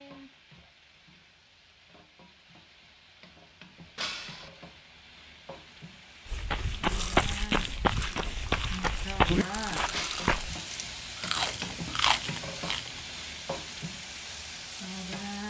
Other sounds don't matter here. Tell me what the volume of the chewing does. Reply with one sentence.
The volume of the chewing goes up.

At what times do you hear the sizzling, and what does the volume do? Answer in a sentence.
You can hear the sizzling from 0.0 to 15.4 s, getting louder.